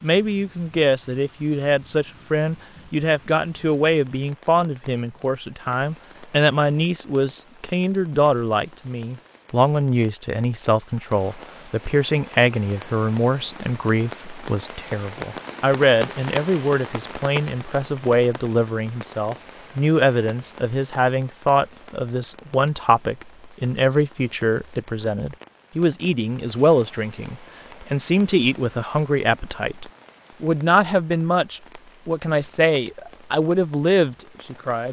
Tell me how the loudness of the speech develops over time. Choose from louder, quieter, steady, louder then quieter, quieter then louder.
steady.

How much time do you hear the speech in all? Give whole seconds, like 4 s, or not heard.
35 s.